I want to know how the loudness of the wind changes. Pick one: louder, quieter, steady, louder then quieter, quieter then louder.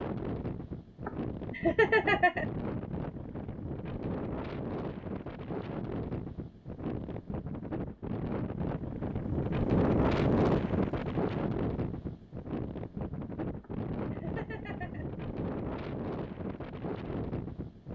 louder then quieter.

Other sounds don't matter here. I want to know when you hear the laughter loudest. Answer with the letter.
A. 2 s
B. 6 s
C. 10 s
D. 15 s
A.